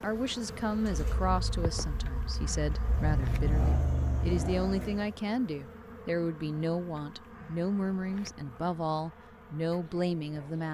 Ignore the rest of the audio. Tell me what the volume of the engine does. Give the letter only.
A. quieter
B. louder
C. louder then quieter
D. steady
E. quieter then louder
B.